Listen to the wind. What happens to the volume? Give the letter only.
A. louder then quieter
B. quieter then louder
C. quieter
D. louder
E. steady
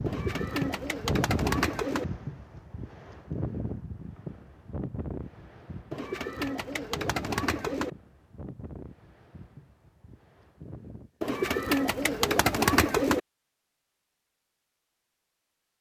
C.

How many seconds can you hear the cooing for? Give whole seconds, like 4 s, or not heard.
6 s.